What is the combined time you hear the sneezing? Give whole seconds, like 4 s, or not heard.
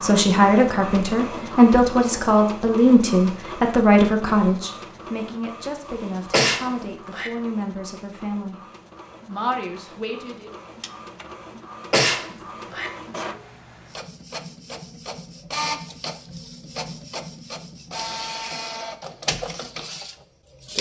2 s.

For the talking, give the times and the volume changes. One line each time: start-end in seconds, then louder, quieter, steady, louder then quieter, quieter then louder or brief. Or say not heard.
0.0-8.6 quieter
9.2-10.5 brief.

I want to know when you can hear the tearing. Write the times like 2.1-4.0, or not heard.
not heard.